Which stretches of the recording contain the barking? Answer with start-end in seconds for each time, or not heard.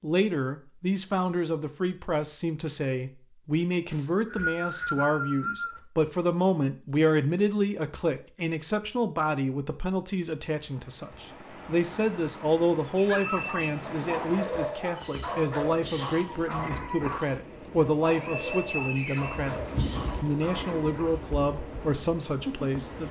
13.1-21.2.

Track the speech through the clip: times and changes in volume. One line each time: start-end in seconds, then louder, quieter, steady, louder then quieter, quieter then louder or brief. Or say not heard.
0.0-23.0 steady.